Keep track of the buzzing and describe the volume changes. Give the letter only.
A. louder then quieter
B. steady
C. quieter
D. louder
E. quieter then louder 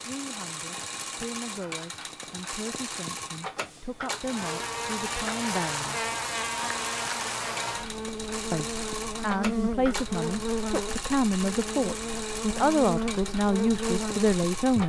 B.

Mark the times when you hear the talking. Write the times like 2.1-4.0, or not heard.
0.0-6.1, 8.5-14.8.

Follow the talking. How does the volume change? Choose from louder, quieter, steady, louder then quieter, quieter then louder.
louder.